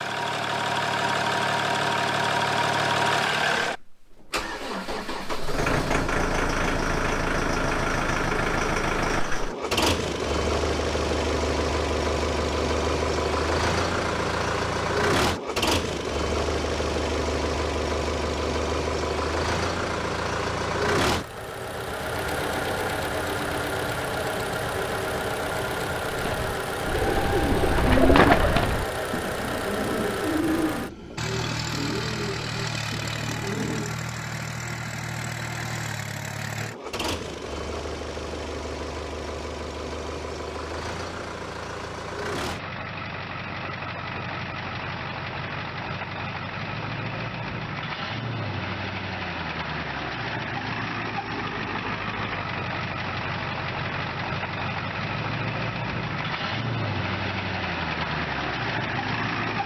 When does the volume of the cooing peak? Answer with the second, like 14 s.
28 s.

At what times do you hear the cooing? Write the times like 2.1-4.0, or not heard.
26.1-34.0.